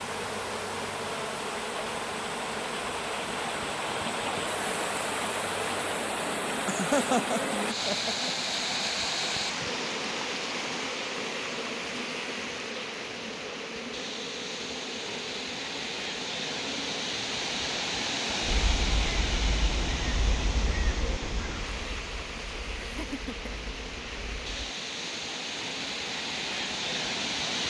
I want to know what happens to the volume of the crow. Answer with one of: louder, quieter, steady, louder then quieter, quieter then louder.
quieter.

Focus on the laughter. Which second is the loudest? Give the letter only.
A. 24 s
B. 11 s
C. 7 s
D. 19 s
C.